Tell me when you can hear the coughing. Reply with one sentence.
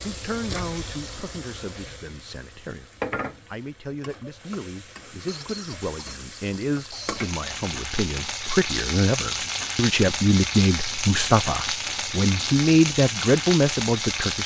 You can hear the coughing from 5.2 to 7.3 s.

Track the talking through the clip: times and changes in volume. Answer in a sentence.
The talking can be heard from 0.0 to 14.4 s, getting louder.